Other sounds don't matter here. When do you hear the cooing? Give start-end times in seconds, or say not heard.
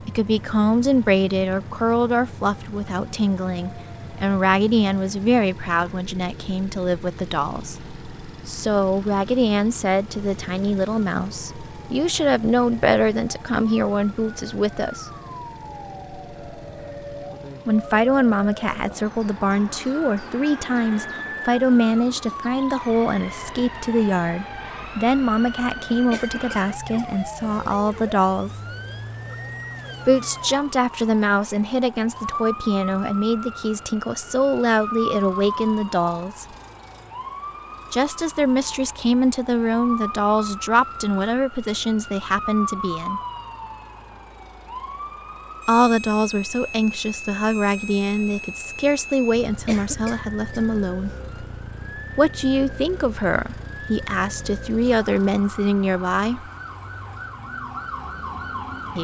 not heard.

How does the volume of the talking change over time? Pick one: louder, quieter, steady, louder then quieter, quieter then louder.
steady.